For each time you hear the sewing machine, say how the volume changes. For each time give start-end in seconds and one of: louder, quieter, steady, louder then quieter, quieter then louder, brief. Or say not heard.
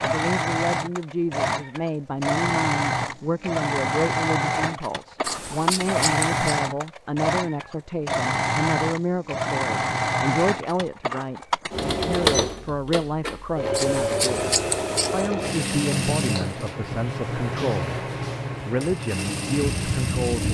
0.0-20.4 steady.